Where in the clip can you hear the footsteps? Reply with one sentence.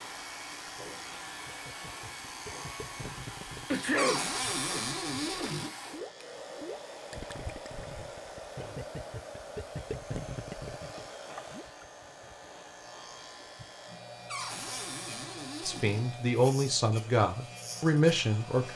You can't hear the footsteps here.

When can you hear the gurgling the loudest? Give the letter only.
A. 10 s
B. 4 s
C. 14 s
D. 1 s
A.